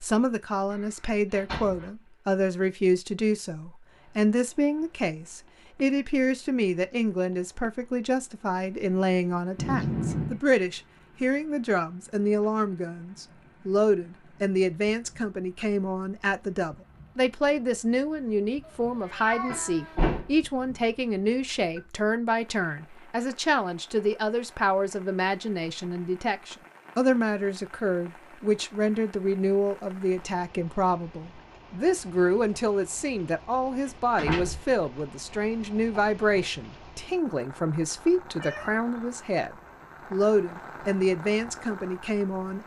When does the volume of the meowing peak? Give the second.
10 s.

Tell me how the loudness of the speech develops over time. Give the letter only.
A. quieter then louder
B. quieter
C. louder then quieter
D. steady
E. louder
D.